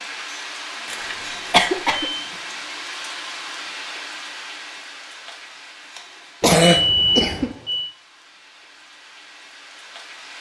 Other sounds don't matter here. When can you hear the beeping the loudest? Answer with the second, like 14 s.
7 s.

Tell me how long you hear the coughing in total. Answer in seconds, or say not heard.
2 s.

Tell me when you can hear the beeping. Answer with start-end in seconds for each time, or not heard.
0.8-2.2, 6.8-7.9.